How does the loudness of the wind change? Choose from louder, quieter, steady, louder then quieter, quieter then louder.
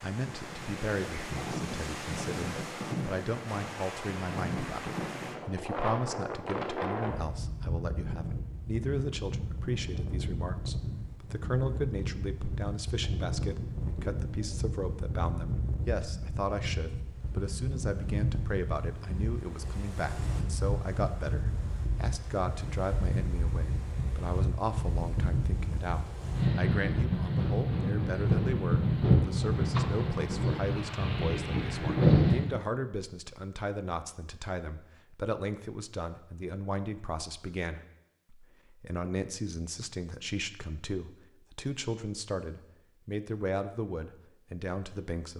louder.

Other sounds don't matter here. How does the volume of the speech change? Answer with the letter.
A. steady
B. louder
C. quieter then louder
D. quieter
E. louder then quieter
A.